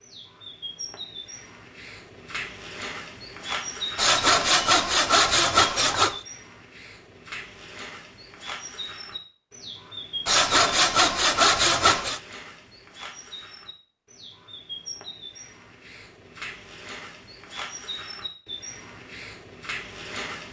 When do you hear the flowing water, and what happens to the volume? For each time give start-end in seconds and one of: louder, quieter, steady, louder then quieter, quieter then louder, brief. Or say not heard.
not heard.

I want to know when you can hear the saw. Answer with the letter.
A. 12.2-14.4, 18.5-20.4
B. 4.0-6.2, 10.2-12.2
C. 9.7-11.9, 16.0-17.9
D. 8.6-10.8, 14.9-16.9
B.